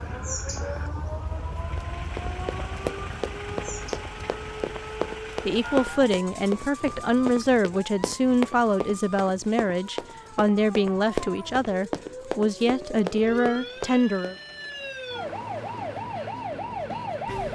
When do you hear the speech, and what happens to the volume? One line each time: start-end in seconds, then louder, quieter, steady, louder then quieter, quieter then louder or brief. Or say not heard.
5.5-14.3 steady.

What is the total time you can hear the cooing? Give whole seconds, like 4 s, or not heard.
not heard.